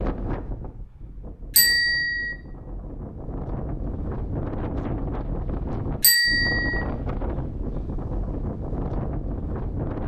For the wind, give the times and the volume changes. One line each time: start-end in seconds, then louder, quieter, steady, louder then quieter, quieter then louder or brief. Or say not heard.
0.0-10.0 louder.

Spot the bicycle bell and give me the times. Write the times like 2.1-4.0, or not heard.
1.6-2.4, 6.0-6.8.